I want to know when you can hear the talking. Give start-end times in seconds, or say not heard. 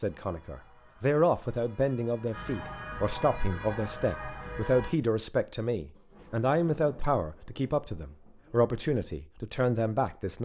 0.0-10.4.